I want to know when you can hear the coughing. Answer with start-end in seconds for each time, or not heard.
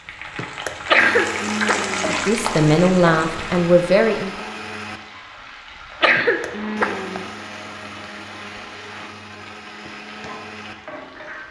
0.8-2.1, 6.0-7.2.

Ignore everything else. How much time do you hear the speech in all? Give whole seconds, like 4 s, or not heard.
2 s.